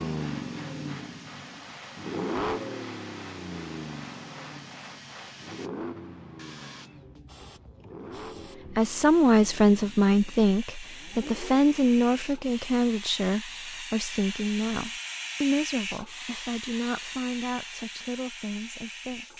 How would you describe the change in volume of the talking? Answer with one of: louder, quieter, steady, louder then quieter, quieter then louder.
quieter.